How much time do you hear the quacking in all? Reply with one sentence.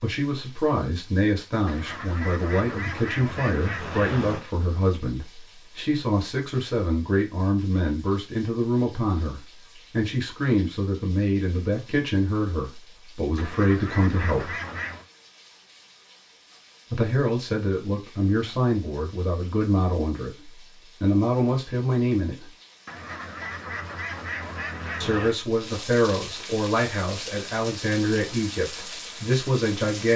You can hear the quacking for 7 seconds altogether.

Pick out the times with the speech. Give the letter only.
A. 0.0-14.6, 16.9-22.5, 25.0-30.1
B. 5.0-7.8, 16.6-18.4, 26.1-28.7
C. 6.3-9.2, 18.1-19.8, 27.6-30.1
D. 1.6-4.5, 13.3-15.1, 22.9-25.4
A.